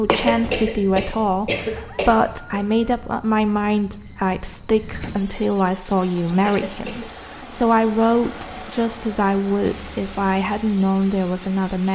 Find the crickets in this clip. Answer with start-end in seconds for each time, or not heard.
0.0-11.8.